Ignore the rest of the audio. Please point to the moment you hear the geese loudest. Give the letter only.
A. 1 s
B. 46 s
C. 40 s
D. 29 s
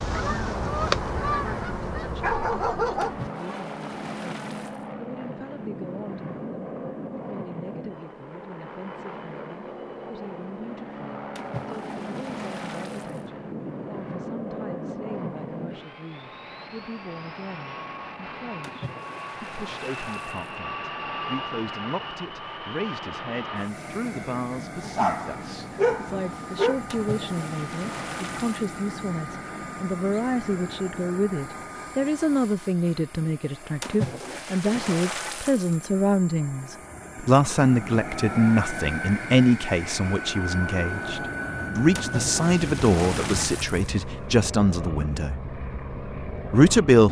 A.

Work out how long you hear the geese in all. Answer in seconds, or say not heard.
4 s.